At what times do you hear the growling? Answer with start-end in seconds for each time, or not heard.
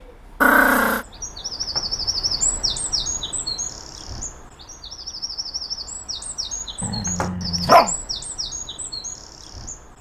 0.4-1.1, 6.8-7.9.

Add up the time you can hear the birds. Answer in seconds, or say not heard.
10 s.